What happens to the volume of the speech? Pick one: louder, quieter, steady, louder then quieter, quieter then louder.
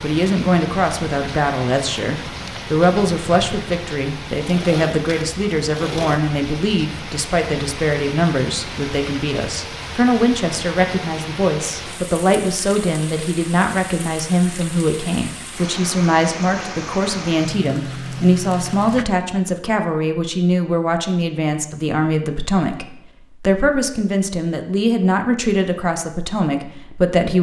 steady.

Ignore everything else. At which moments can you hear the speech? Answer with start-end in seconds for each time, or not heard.
0.0-27.3.